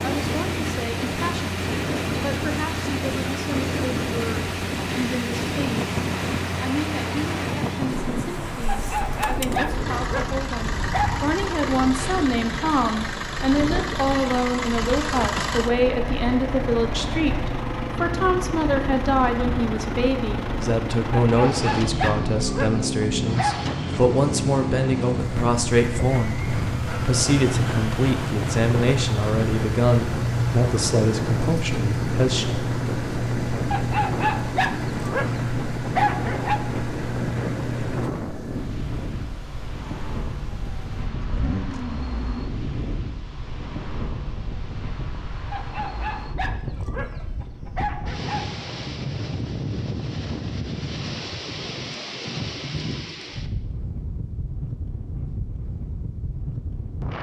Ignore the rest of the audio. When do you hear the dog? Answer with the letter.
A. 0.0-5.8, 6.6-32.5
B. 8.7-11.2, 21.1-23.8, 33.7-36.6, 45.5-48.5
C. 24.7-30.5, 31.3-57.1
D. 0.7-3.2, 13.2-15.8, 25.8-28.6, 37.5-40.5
B.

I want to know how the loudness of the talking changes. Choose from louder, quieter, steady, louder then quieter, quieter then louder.
louder.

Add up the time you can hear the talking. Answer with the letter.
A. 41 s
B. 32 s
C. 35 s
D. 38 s
B.